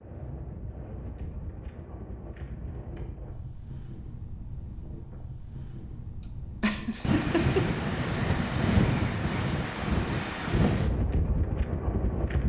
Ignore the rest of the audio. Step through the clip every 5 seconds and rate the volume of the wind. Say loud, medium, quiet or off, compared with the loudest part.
quiet, loud, loud.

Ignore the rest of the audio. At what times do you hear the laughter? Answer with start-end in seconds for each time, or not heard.
6.6-7.7.